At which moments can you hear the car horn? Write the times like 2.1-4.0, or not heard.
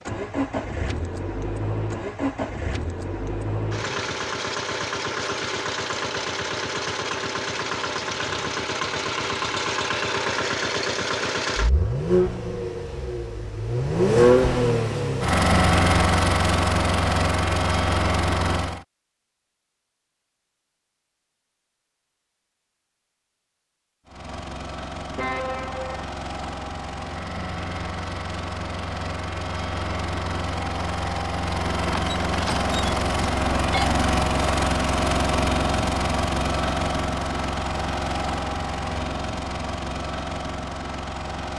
25.1-26.1.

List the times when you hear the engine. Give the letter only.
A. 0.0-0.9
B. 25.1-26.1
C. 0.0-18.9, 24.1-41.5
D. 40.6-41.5
C.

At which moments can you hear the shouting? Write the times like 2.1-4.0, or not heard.
not heard.